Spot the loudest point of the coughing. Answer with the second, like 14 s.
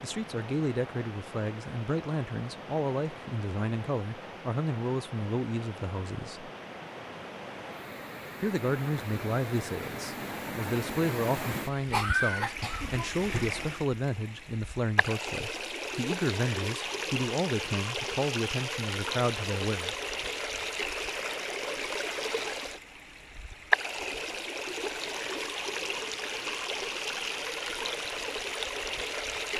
12 s.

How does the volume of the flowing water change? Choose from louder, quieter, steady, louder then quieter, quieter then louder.
louder.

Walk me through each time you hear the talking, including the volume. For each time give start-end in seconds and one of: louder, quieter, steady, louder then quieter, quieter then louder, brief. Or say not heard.
0.0-6.5 steady
8.4-19.9 steady.